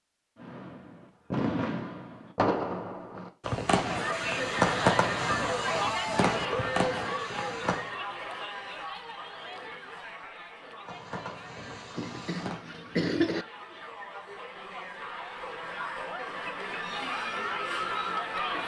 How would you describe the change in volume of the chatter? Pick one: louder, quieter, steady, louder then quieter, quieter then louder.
quieter then louder.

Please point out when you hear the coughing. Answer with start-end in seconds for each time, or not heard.
11.9-13.4.